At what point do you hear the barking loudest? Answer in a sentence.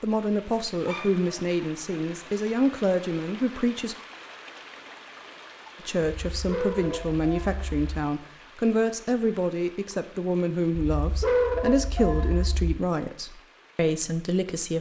The volume of the barking peaks at 11 seconds.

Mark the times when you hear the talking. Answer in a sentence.
The talking can be heard from 0.0 to 4.0 s and from 5.8 to 14.7 s.